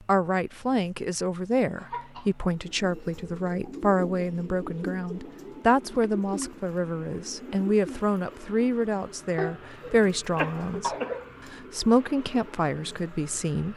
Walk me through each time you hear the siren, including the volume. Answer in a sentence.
You can't hear the siren here.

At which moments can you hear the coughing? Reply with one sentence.
The coughing can be heard from 1.8 to 2.3 s, from 6.0 to 6.5 s and from 9.3 to 11.3 s.